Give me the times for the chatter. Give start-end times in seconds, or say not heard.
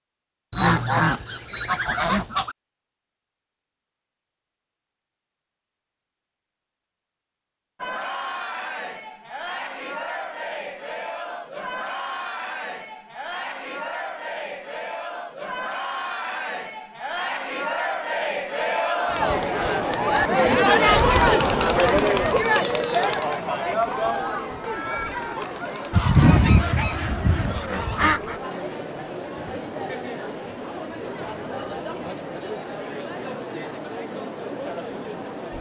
7.8-35.5.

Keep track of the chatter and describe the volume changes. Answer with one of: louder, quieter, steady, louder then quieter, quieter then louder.
louder then quieter.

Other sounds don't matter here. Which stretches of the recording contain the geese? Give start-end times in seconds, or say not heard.
0.5-2.5, 25.9-28.4.